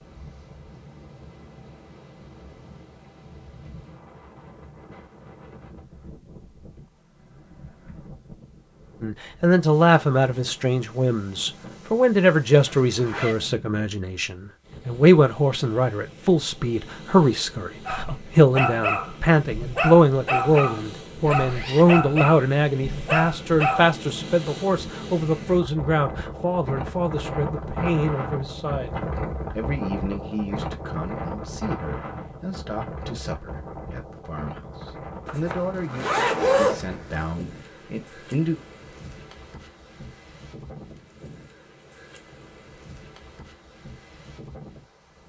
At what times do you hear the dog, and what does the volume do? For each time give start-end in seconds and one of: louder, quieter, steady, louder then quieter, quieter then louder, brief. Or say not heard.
17.9-23.9 steady.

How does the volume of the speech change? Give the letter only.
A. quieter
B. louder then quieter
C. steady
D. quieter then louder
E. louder
A.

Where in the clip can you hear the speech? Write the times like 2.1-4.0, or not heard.
9.0-28.9, 29.6-38.5.